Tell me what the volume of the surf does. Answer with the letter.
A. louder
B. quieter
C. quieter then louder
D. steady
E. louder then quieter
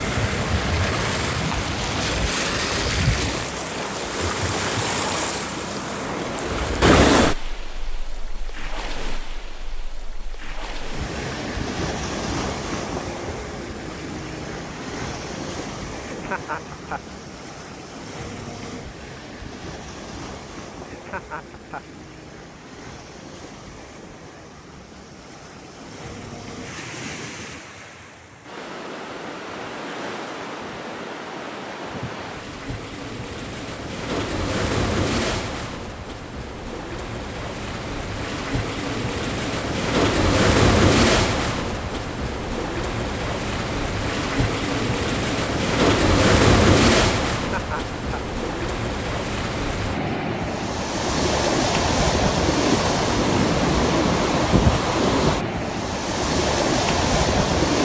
C.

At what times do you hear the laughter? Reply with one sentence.
You can hear the laughter from 16.1 to 17.1 s, from 20.9 to 21.9 s and from 47.4 to 48.2 s.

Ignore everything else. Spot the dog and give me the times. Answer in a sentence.
You can't hear the dog here.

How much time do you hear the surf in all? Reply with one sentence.
The surf can be heard for 58 seconds in total.